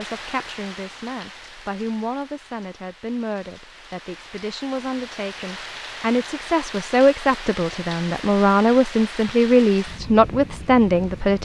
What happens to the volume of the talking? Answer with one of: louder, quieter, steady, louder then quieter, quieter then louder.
louder.